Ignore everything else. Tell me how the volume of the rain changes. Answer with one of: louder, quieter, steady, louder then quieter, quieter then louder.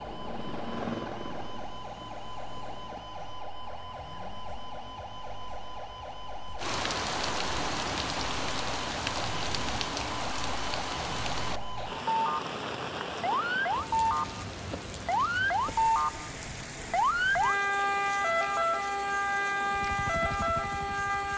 quieter.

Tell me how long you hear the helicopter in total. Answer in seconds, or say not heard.
7 s.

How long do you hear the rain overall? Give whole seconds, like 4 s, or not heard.
15 s.